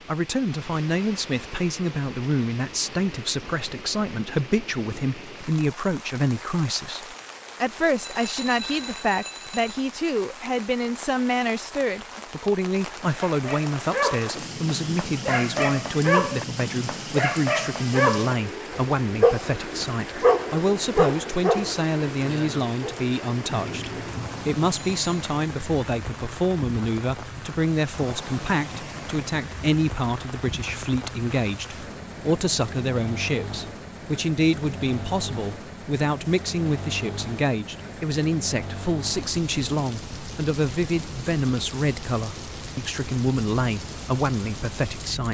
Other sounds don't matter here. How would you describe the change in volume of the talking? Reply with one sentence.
The volume of the talking stays about the same.